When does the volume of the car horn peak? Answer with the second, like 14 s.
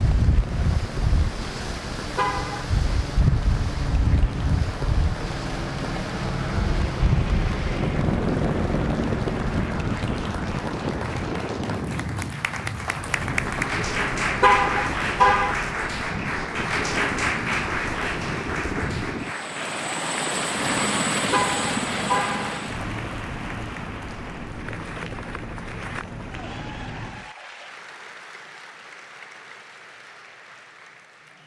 15 s.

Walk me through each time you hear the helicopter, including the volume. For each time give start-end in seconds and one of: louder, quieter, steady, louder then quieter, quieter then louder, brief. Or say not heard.
0.1-10.0 louder
12.8-27.3 louder then quieter.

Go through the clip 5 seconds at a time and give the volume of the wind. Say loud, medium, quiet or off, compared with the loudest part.
loud, loud, loud, medium, off, off, off.